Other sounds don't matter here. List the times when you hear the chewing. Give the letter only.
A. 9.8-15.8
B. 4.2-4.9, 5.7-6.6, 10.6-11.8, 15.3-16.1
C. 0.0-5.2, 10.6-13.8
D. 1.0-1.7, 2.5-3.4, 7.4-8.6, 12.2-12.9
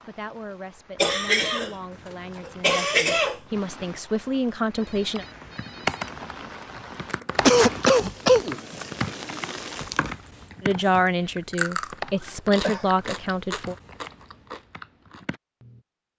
A.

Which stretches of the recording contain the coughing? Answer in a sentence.
You can hear the coughing from 1.0 to 1.7 s, from 2.5 to 3.4 s, from 7.4 to 8.6 s and from 12.2 to 12.9 s.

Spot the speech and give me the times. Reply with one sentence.
You can hear the speech from 0.0 to 5.2 s and from 10.6 to 13.8 s.